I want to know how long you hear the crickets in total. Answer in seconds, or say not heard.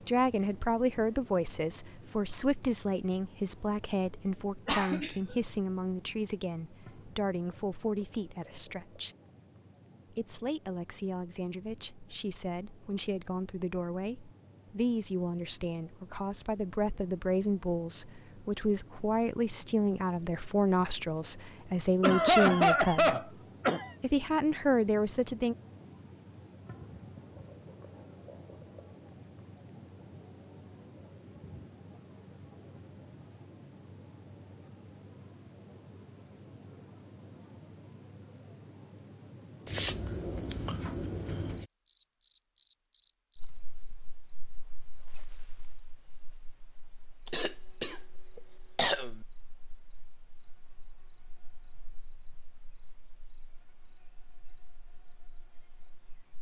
56 s.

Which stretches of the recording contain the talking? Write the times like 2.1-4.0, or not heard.
0.1-9.2, 10.1-23.2, 24.0-25.6.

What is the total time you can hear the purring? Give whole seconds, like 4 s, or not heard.
not heard.